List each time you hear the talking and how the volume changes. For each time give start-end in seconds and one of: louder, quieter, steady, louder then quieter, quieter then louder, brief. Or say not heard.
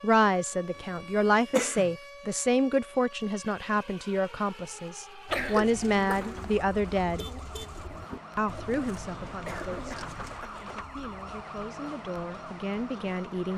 0.0-7.2 quieter then louder
8.3-13.5 quieter then louder.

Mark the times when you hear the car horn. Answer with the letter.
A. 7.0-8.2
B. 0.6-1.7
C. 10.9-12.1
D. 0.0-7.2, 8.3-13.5
A.